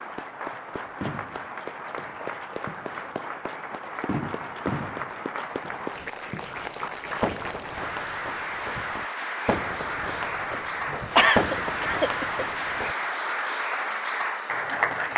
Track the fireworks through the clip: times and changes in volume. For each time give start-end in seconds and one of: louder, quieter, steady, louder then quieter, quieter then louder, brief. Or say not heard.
0.9-12.9 louder.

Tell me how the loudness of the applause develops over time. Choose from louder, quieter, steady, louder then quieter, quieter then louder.
louder.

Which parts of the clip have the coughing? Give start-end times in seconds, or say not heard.
10.9-12.4.